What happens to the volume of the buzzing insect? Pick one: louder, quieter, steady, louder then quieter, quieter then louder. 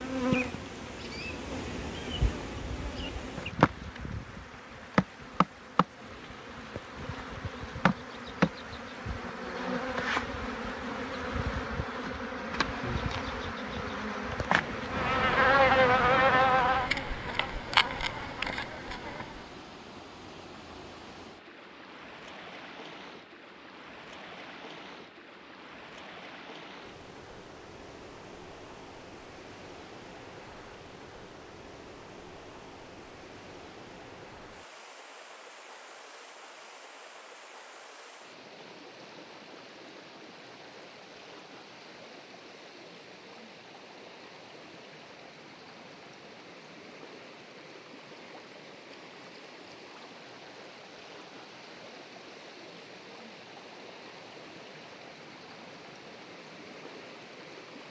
louder.